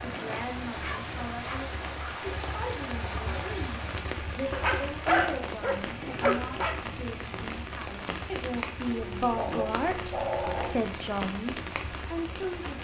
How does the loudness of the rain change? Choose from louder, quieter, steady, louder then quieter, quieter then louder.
steady.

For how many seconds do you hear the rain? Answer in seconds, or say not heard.
13 s.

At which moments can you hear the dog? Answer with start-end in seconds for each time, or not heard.
0.7-2.3, 4.5-6.8, 8.8-10.8.